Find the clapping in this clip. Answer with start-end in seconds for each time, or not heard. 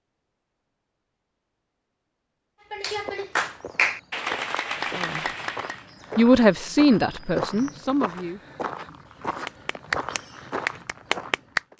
2.7-5.8, 9.4-11.7.